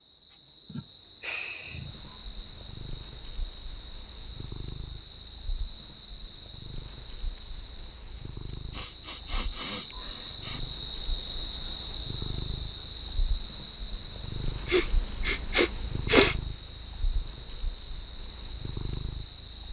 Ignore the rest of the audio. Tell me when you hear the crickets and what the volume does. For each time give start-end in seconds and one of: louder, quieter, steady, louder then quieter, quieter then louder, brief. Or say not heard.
0.0-19.6 louder then quieter.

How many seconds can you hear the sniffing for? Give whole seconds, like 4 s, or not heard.
5 s.